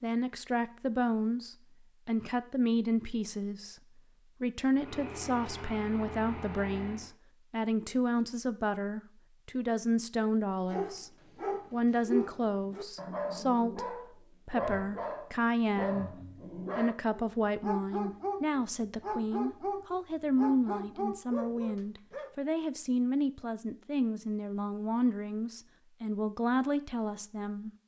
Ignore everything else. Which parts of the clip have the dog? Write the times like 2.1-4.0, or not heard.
10.7-22.4.